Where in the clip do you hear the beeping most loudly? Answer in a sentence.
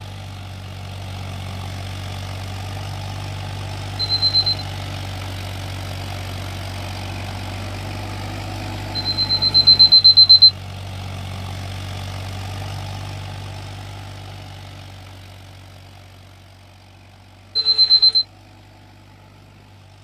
The loudest moment of the beeping is at 10 seconds.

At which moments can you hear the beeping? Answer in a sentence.
You can hear the beeping from 4.0 to 4.5 s, from 8.9 to 10.5 s and from 17.6 to 18.2 s.